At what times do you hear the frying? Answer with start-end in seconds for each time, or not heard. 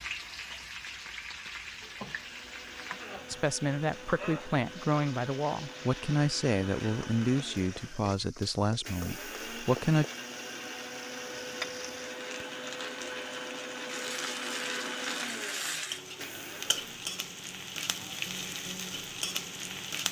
0.0-20.0.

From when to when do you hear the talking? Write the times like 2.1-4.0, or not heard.
3.3-10.1.